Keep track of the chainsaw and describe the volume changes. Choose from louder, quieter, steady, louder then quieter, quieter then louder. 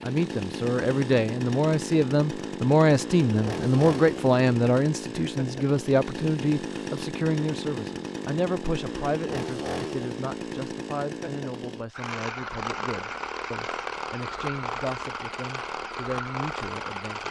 steady.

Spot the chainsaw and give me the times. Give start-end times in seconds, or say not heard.
0.0-17.2.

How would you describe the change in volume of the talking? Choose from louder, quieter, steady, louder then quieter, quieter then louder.
quieter.